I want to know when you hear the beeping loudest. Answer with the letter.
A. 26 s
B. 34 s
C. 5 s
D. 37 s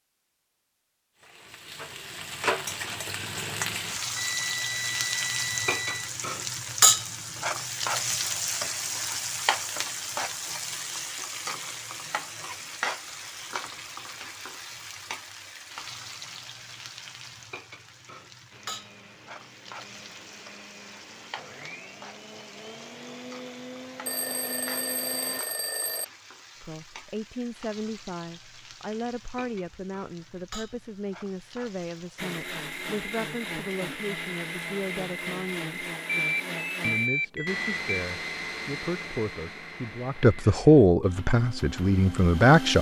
D.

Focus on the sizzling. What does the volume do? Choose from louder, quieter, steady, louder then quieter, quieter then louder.
quieter.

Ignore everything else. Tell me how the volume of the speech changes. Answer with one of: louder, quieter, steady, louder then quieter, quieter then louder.
louder.